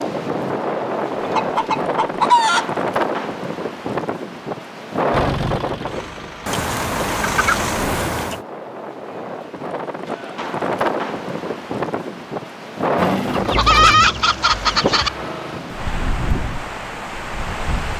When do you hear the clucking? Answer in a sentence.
You can hear the clucking from 1.4 to 2.6 s, from 6.5 to 8.4 s and from 13.3 to 15.1 s.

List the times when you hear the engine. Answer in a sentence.
The engine can be heard from 5.1 to 8.1 s and from 12.9 to 15.6 s.